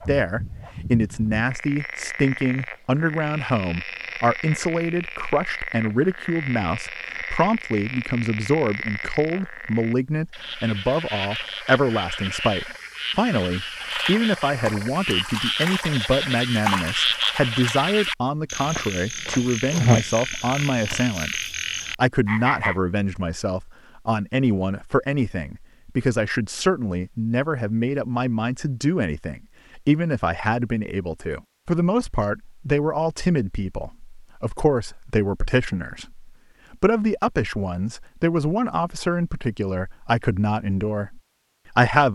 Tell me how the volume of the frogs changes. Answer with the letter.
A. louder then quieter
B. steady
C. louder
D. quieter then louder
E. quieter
C.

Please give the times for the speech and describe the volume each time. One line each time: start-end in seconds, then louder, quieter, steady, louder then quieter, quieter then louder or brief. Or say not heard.
0.1-42.1 steady.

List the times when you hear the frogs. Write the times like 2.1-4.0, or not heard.
0.0-22.8.